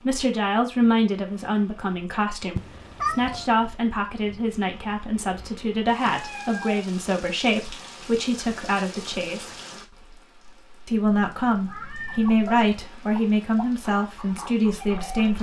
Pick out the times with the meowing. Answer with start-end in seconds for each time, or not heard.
2.5-3.5, 6.1-7.0, 11.2-12.3.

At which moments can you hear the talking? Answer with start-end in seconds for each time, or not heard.
0.0-9.6, 10.8-15.3.